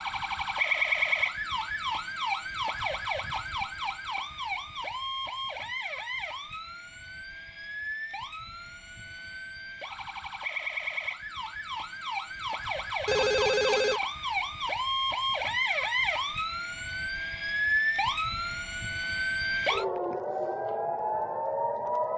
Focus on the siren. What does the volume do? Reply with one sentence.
The volume of the siren goes down, then up.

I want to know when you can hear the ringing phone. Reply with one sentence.
You can hear the ringing phone from 13.1 to 14.0 s.